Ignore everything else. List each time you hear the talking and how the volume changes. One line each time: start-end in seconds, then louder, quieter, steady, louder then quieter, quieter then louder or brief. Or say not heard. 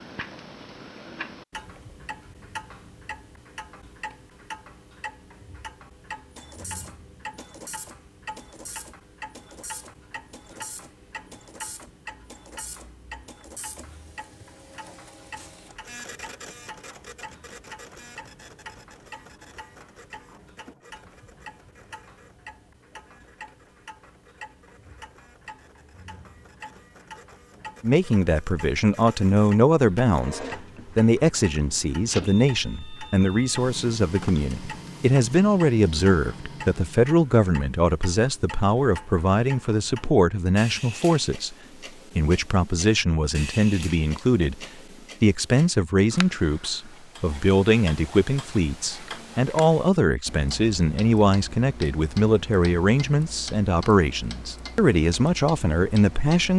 27.8-41.5 steady
42.1-56.5 steady.